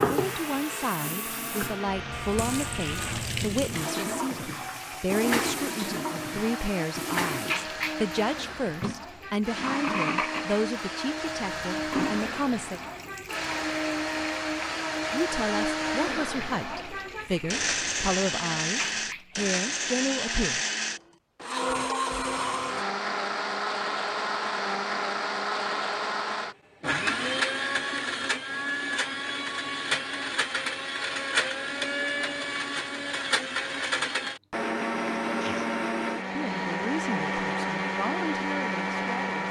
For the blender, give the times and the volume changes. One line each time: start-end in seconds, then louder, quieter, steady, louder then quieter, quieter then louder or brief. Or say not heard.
0.1-39.4 louder.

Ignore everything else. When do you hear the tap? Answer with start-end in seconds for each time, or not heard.
0.0-19.5.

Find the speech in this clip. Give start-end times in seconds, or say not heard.
0.0-12.8, 15.1-20.6, 36.4-39.4.